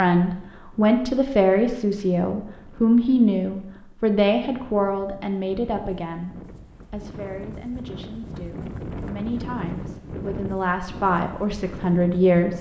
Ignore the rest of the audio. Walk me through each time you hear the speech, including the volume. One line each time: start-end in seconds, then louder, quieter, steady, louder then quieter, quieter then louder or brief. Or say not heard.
0.0-12.5 quieter then louder.